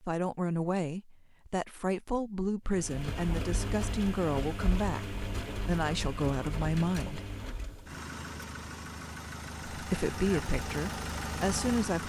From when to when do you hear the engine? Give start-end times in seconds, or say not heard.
2.6-12.0.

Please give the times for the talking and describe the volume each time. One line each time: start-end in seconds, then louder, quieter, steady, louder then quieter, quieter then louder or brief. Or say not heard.
0.0-7.2 steady
9.7-12.0 brief.